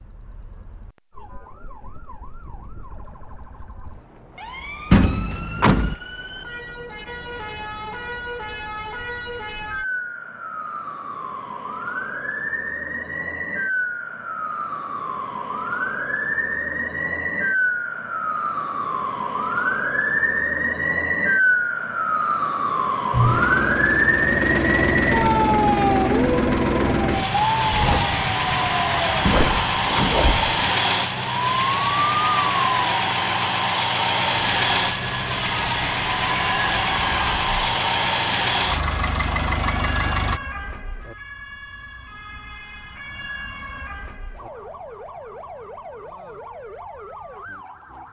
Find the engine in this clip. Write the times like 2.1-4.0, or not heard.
23.1-40.4.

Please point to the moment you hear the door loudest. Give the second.
5 s.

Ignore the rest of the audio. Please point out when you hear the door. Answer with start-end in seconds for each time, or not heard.
4.9-6.0, 29.2-30.3.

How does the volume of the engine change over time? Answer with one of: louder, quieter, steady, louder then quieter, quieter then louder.
steady.